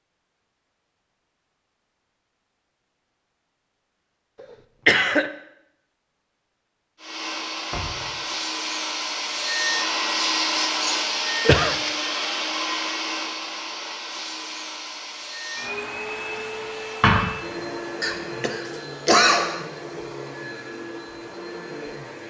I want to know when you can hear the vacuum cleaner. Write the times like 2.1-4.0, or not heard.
7.0-22.2.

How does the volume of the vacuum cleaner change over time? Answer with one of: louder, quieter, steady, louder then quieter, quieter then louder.
quieter.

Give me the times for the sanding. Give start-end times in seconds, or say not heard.
not heard.